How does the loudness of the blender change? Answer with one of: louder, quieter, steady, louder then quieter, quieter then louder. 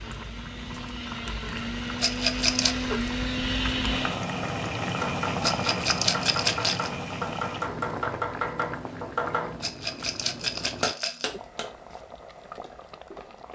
louder.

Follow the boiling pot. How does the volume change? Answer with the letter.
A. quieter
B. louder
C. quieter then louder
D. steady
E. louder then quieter
E.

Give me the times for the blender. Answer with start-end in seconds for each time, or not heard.
0.0-4.2.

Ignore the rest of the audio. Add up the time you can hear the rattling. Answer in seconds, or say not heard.
4 s.